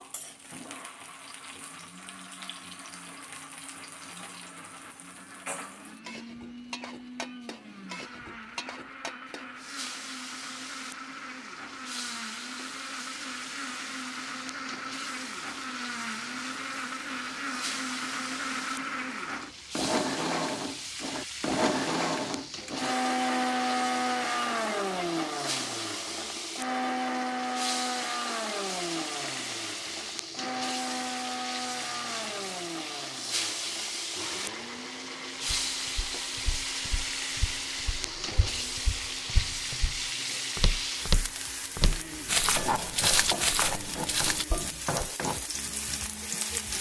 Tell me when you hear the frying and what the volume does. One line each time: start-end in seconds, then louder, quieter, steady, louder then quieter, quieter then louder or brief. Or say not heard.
0.0-46.7 louder.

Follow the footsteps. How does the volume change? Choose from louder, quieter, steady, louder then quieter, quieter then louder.
louder.